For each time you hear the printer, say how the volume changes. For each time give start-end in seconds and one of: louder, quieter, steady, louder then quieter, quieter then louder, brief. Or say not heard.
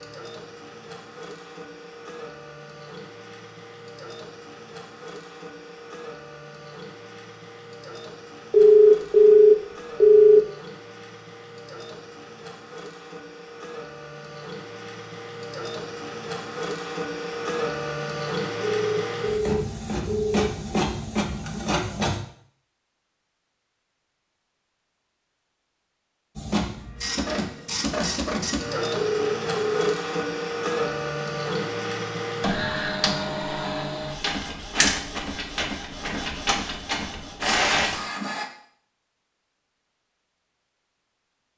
0.0-22.2 louder
26.4-38.5 steady.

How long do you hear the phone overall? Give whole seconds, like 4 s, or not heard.
5 s.